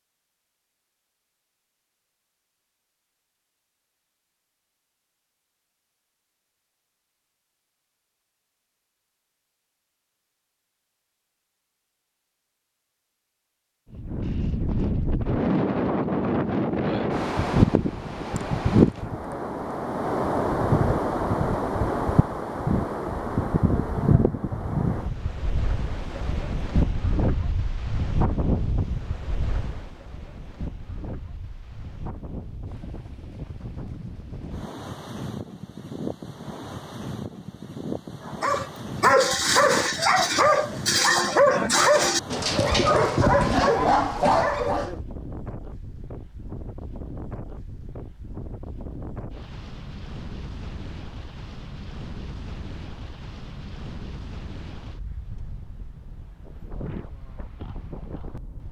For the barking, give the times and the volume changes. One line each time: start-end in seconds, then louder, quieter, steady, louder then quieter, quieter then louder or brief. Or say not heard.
38.2-45.0 steady.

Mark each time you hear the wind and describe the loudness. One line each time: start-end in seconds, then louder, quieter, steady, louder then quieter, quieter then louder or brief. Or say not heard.
13.9-58.6 quieter.